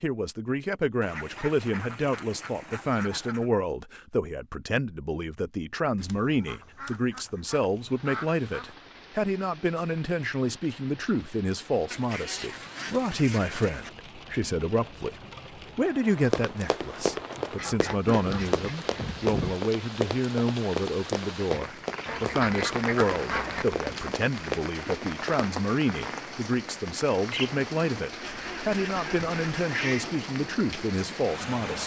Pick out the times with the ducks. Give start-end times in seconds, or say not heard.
1.0-3.5, 6.0-8.8, 11.9-13.9, 17.6-19.6, 22.1-23.6, 28.2-30.1.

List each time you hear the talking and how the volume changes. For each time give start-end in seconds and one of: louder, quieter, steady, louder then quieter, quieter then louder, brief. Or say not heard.
0.0-31.8 steady.